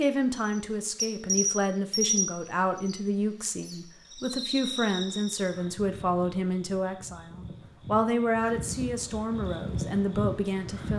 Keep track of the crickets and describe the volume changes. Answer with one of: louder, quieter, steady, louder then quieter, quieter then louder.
quieter then louder.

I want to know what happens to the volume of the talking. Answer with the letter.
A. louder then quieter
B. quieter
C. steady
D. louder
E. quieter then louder
C.